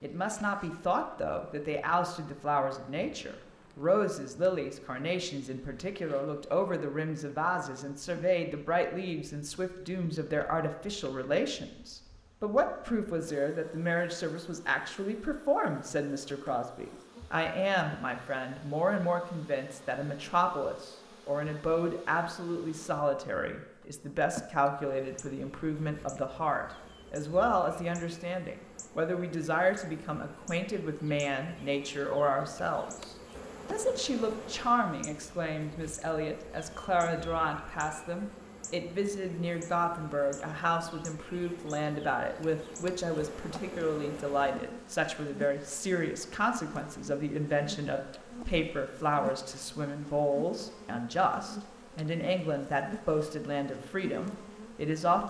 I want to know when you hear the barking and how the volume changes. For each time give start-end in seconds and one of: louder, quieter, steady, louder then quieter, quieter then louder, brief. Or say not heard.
not heard.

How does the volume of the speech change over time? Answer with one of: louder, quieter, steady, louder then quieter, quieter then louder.
steady.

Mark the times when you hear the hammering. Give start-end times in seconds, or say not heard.
not heard.